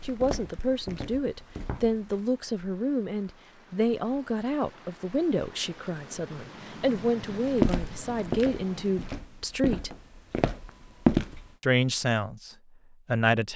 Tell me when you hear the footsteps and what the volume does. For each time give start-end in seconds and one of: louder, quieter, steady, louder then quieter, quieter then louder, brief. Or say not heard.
0.0-2.0 brief
7.5-11.5 quieter then louder.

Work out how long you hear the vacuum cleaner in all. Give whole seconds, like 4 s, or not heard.
not heard.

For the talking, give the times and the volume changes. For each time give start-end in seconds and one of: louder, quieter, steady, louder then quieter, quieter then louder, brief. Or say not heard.
0.0-9.9 steady
11.6-13.5 brief.